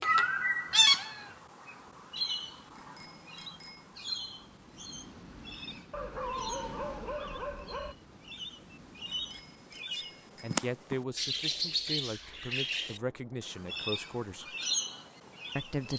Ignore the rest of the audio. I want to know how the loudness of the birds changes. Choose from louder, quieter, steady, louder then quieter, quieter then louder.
quieter then louder.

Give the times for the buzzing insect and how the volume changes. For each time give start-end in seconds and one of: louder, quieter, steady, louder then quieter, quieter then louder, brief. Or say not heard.
not heard.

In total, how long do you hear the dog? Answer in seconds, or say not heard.
2 s.